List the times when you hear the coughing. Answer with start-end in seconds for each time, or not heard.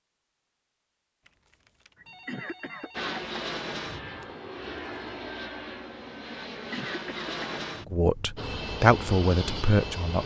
1.9-3.4, 6.5-7.7.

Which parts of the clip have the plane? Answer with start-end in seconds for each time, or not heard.
2.9-10.2.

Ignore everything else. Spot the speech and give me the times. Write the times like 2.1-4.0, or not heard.
7.8-10.2.